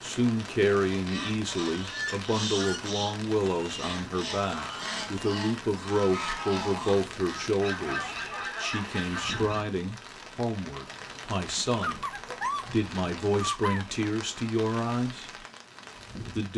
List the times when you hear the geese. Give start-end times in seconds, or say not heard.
0.9-9.7.